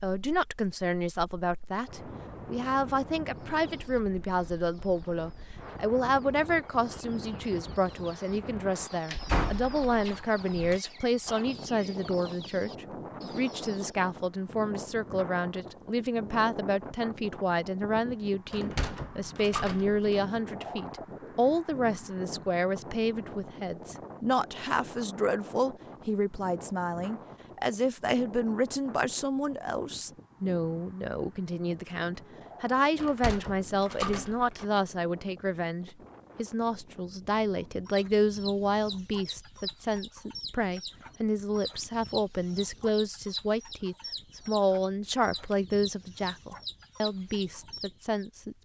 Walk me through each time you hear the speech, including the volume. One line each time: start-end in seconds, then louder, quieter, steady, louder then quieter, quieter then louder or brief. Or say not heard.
0.0-48.5 steady.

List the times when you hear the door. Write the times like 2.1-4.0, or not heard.
9.1-10.8, 18.5-20.2, 33.0-34.6.